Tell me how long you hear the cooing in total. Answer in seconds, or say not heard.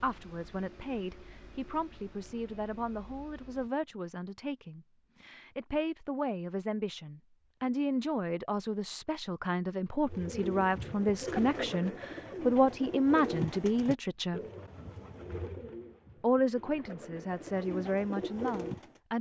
9 s.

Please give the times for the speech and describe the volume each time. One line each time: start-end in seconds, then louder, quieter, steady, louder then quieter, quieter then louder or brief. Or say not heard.
0.0-14.4 louder
16.2-19.1 brief.